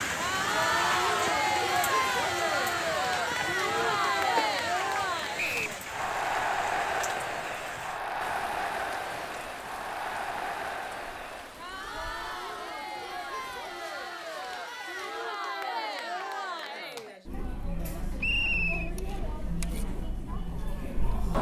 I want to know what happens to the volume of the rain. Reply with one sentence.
The loudness of the rain goes down.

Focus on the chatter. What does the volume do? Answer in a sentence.
The volume of the chatter goes down.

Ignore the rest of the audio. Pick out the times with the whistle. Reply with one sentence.
The whistle can be heard from 5.3 to 5.8 s and from 18.2 to 18.9 s.